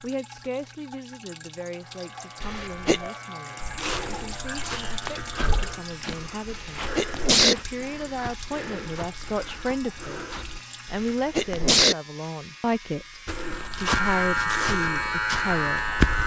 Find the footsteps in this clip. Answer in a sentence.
You can hear the footsteps from 3.6 to 10.7 s and from 13.2 to 16.2 s.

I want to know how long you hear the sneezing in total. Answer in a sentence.
You can hear the sneezing for 3 seconds altogether.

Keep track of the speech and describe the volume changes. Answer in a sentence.
The loudness of the speech goes up.